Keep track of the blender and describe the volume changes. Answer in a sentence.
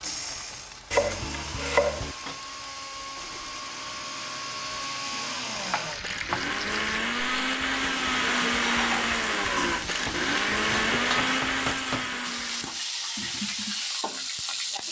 The volume of the blender goes up.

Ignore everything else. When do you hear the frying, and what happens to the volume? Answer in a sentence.
The frying can be heard from 0.0 to 14.8 s, getting louder.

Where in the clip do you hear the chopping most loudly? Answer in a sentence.
The volume of the chopping peaks at 2 seconds.